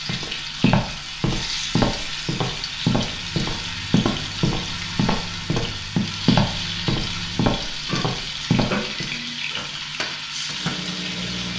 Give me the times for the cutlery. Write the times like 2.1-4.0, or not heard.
not heard.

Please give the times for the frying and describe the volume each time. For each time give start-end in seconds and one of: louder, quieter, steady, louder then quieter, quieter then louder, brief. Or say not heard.
0.0-11.5 steady.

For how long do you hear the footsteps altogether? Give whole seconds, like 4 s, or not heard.
9 s.